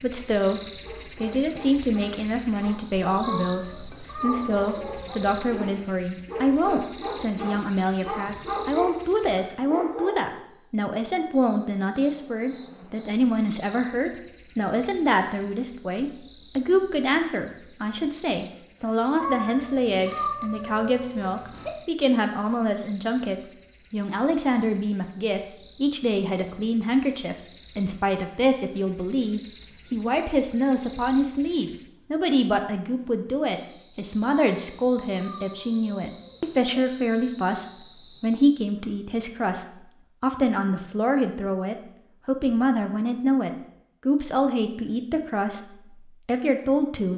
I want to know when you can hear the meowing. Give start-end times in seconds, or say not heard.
3.2-5.5, 19.2-21.7, 34.5-36.6.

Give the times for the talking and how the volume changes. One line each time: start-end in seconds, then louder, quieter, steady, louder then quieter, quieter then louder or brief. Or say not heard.
0.0-47.1 steady.